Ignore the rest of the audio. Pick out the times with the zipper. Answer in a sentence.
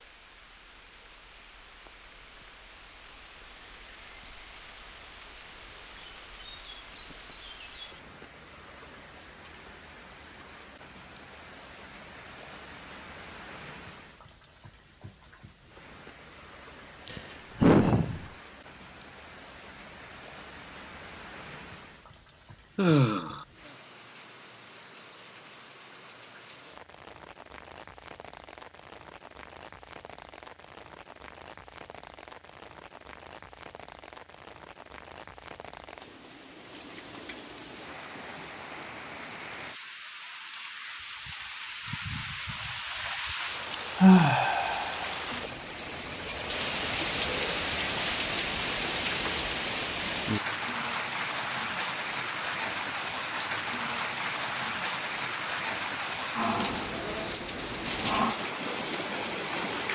You can't hear the zipper here.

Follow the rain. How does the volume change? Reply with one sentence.
The loudness of the rain goes up.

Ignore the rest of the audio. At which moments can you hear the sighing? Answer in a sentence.
You can hear the sighing from 17.1 to 18.2 s, from 22.8 to 23.4 s and from 44.0 to 45.0 s.